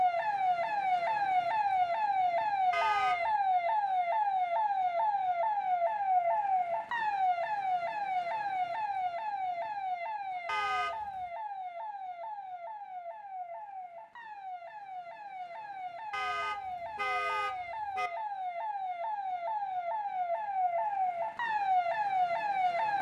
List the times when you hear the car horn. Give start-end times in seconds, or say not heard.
2.7-3.3, 10.4-11.2, 16.1-18.1.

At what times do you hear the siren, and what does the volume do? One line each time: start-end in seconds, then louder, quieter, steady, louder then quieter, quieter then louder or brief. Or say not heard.
0.0-22.9 quieter then louder.